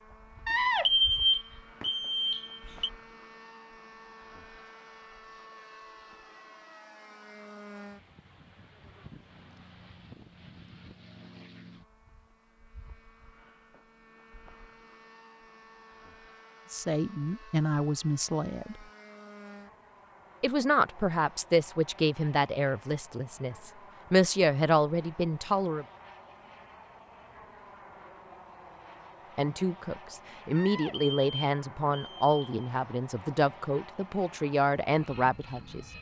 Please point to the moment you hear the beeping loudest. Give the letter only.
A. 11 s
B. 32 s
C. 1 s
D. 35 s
C.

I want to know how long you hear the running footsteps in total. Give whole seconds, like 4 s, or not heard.
not heard.